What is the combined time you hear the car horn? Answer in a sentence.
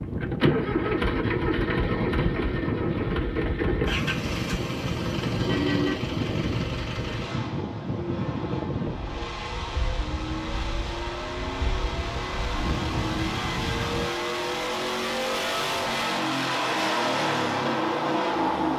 You can hear the car horn for 2 seconds altogether.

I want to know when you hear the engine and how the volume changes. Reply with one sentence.
You can hear the engine from 0.0 to 18.7 s, getting quieter then louder.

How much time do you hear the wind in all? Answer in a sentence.
The wind can be heard for 14 seconds in total.